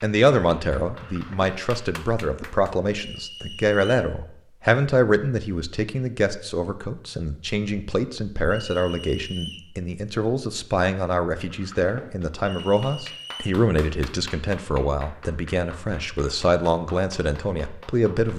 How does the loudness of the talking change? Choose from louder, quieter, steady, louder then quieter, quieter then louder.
steady.